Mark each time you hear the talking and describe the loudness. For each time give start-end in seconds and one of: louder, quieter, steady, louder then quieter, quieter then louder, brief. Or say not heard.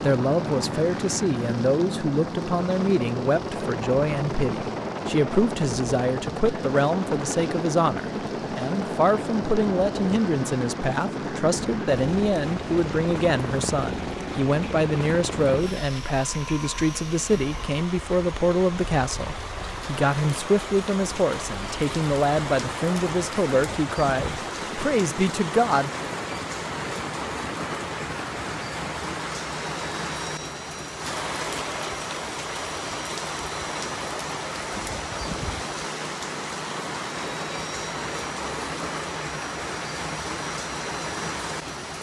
0.0-25.9 steady.